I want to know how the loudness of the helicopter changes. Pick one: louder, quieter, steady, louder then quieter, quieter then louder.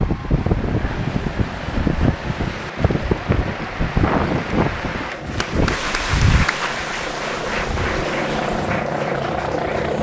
louder.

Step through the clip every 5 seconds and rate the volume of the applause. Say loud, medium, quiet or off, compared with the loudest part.
medium, loud.